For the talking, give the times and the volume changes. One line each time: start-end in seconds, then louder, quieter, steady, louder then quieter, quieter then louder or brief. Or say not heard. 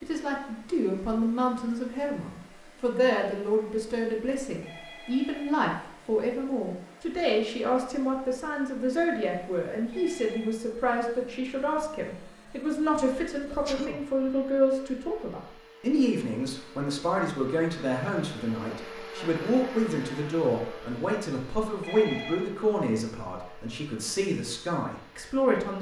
0.0-25.7 steady.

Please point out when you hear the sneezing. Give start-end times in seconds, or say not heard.
13.4-14.0.